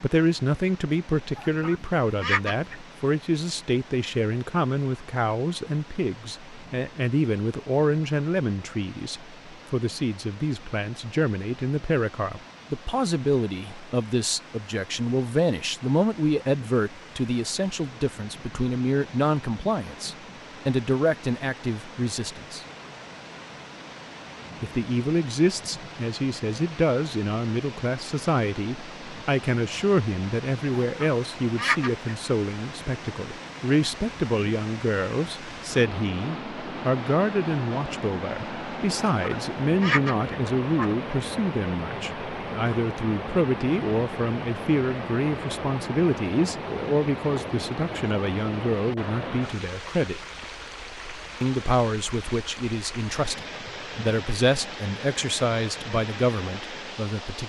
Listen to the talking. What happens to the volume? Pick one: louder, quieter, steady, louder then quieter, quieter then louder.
steady.